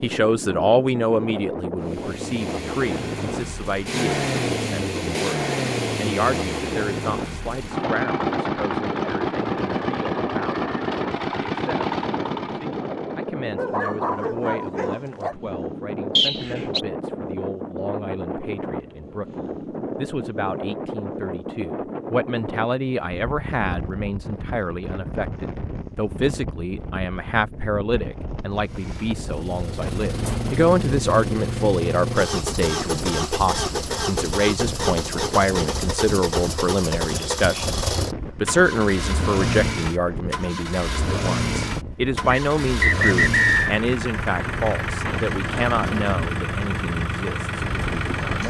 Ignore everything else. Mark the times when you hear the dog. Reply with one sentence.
You can hear the dog from 13.6 to 15.3 s.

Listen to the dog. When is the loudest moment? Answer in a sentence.
The loudest moment of the dog is at 14 seconds.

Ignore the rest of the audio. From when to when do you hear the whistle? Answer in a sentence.
You can hear the whistle from 16.1 to 16.9 s and from 42.3 to 43.8 s.